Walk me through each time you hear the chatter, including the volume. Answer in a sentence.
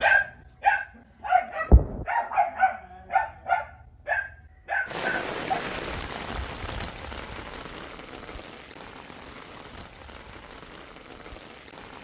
You can't hear the chatter here.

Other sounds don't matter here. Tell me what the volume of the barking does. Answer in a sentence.
The loudness of the barking goes down.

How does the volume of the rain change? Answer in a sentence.
The volume of the rain goes down.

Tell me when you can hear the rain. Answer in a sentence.
You can hear the rain from 4.8 to 11.9 s.